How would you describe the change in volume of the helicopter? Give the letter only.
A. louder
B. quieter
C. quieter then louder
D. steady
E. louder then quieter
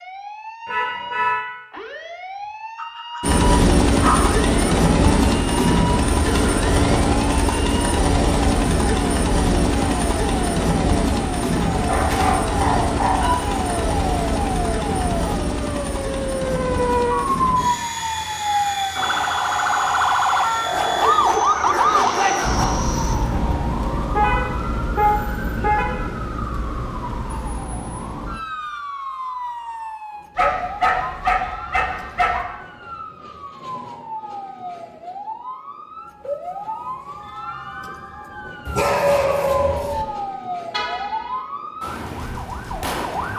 B.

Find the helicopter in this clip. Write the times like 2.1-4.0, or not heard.
3.2-23.1.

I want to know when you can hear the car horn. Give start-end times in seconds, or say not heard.
0.7-1.4, 24.1-26.0, 40.7-41.4.